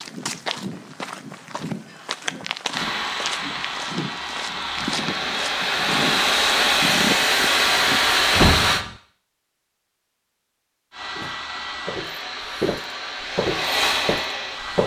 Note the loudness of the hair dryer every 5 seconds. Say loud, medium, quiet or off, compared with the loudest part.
medium, loud, medium.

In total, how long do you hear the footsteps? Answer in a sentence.
The footsteps can be heard for 12 seconds in total.